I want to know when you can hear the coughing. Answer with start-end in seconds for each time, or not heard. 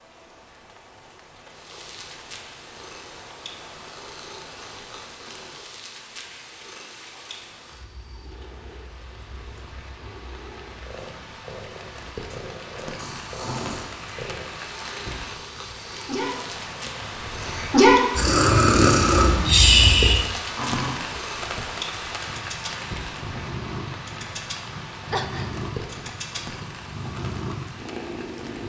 25.1-25.6.